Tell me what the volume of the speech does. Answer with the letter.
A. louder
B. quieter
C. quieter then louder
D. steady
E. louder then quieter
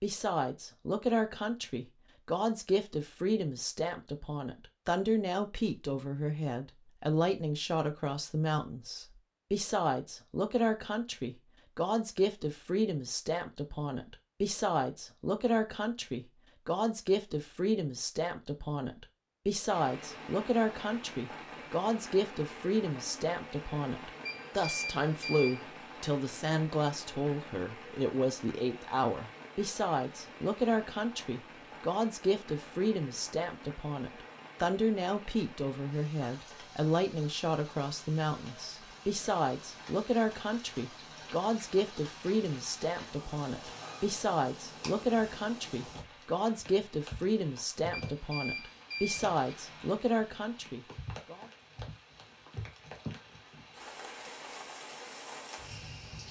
D.